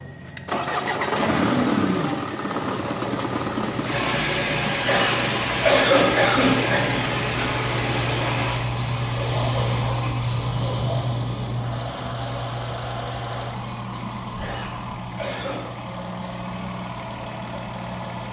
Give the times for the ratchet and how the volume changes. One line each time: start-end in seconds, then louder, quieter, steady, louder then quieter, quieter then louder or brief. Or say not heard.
not heard.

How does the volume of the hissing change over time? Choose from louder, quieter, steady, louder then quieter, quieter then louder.
louder then quieter.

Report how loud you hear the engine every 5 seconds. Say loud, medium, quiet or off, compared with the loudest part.
loud, loud, medium, medium.